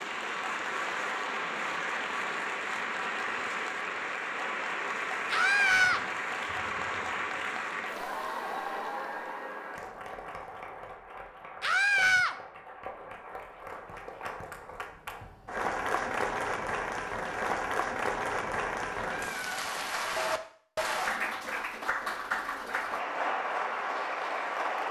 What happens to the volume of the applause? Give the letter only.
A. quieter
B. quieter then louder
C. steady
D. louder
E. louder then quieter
B.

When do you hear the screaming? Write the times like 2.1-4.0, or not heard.
5.3-6.0, 11.6-12.3, 18.9-19.6.